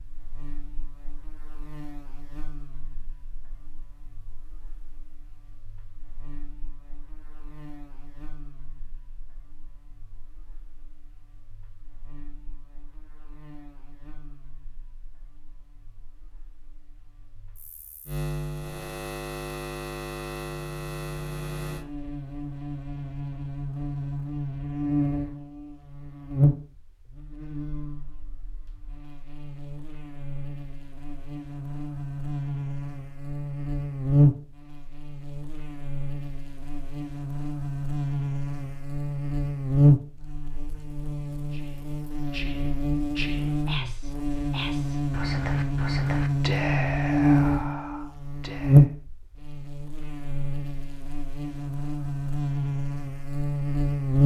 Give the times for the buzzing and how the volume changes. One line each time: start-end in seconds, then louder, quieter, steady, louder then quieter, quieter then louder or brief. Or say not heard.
0.0-54.2 louder.